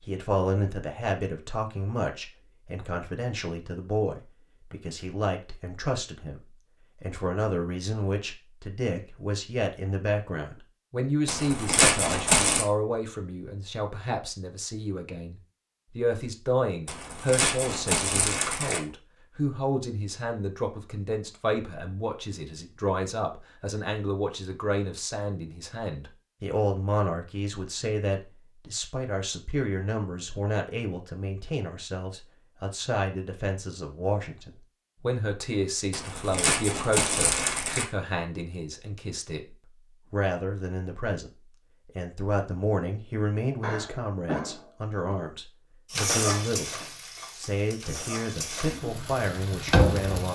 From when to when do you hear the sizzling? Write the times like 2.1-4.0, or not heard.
45.9-50.3.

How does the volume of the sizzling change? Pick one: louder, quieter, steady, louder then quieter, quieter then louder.
quieter then louder.